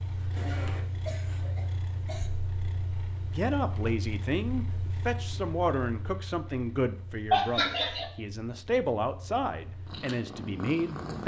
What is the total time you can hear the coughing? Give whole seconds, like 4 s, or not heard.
3 s.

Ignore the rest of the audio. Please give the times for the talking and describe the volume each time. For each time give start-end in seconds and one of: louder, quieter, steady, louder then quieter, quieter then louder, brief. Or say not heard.
3.3-11.2 steady.